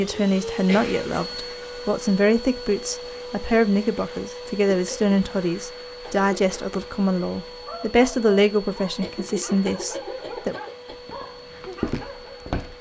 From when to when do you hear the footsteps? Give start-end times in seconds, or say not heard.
10.9-12.7.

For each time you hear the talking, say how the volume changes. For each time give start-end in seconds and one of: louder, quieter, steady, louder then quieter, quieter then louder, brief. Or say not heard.
0.0-10.6 steady.